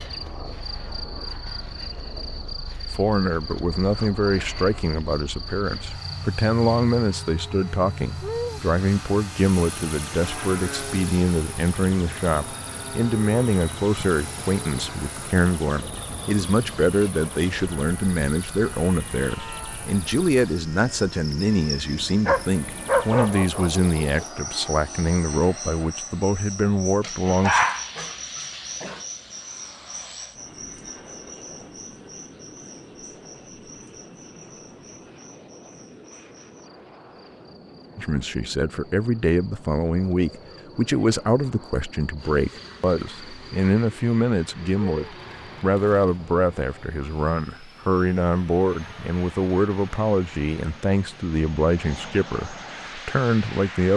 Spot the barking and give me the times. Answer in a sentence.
You can hear the barking from 22.2 to 24.1 s and from 27.0 to 29.0 s.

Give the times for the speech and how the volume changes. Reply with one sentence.
The speech can be heard from 2.9 to 27.6 s, at a steady volume; and from 38.0 to 53.9 s, at a steady volume.